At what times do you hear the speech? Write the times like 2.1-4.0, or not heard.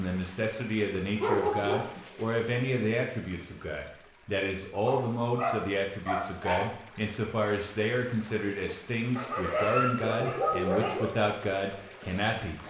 0.0-12.6.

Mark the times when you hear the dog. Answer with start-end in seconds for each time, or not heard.
1.2-2.0, 4.8-6.7, 9.2-11.2.